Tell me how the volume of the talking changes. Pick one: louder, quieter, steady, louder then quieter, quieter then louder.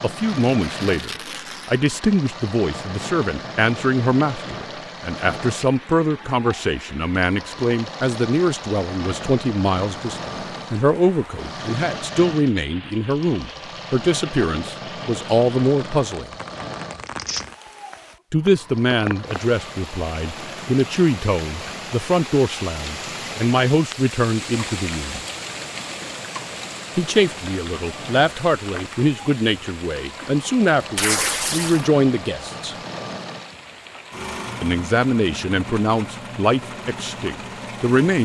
steady.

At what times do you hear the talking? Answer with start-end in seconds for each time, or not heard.
0.0-16.3, 18.3-25.2, 26.9-32.8, 34.6-38.2.